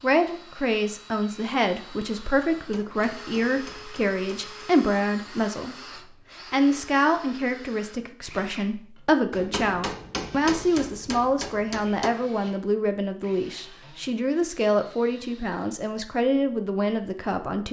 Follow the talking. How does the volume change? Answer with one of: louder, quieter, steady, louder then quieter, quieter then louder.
steady.